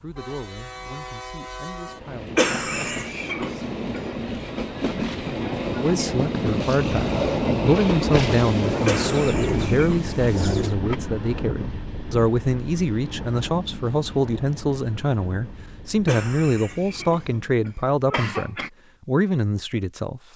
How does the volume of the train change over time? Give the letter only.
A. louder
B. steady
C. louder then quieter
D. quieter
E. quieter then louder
C.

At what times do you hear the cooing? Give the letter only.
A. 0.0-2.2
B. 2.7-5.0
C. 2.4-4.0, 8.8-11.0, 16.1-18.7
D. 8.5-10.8
D.